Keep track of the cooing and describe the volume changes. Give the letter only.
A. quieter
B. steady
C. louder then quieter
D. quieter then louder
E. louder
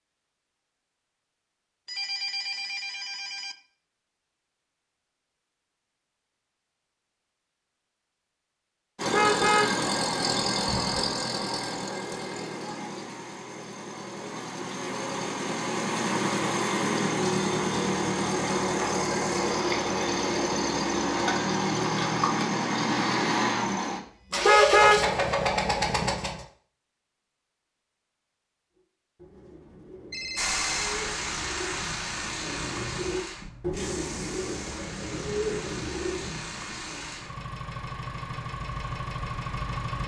E.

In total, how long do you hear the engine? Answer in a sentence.
The engine can be heard for 27 seconds in total.